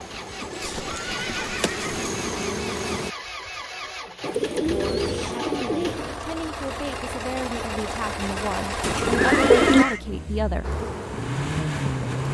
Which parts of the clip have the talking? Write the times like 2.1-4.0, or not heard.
4.5-10.8.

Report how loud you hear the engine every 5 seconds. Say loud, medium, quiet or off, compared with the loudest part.
medium, loud, loud.